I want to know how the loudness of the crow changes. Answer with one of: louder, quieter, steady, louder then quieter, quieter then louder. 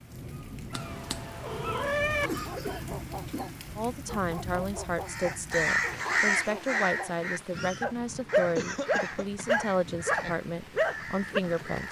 quieter.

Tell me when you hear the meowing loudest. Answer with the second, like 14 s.
2 s.